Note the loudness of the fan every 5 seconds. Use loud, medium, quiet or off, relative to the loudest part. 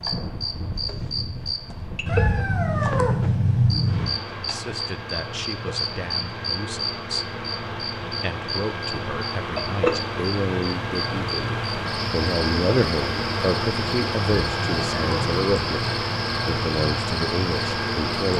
medium, medium, loud, loud.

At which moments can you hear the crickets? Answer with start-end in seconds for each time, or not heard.
0.0-18.3.